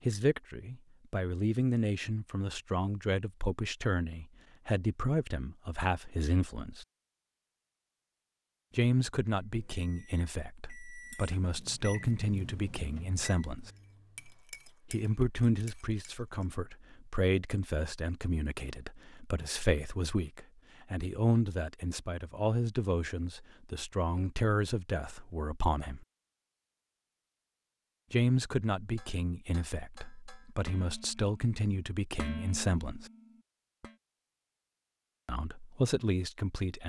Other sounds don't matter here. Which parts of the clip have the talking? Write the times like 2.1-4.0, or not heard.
0.1-6.8, 8.8-13.7, 14.9-26.1, 28.1-33.1, 35.2-36.8.